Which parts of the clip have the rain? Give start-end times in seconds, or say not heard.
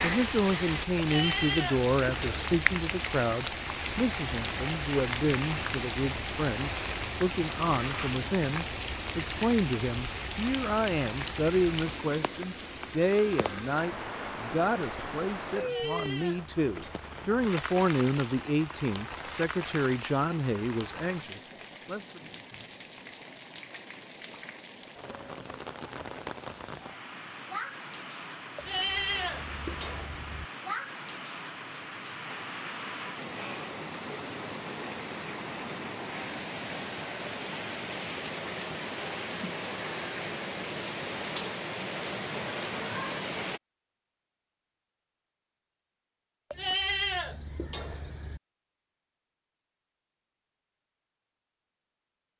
0.0-43.6.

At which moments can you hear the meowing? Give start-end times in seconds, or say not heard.
not heard.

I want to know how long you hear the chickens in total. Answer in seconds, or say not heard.
not heard.